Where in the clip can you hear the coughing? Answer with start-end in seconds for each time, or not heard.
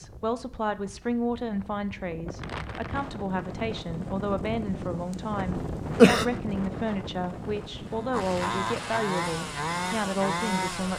5.5-6.2.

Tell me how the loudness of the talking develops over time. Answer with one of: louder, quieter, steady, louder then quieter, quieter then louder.
steady.